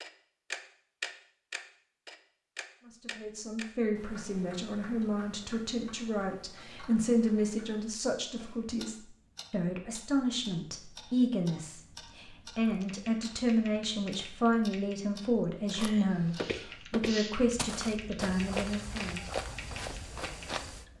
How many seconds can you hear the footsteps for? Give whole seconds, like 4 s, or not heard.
5 s.